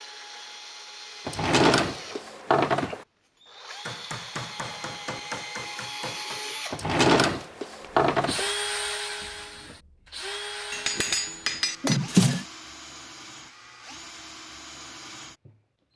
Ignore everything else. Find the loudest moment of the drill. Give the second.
9 s.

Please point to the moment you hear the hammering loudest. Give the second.
11 s.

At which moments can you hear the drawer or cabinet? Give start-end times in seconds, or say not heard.
1.2-3.0, 6.7-8.5, 11.8-12.4.